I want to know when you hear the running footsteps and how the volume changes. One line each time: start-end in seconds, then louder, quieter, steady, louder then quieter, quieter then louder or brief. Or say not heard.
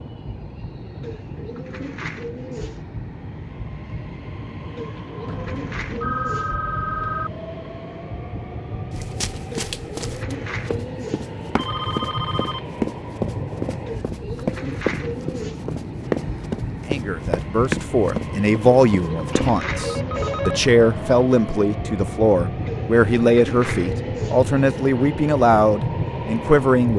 8.9-19.5 louder.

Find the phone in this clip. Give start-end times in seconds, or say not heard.
5.2-7.3, 11.6-12.7, 19.3-21.2.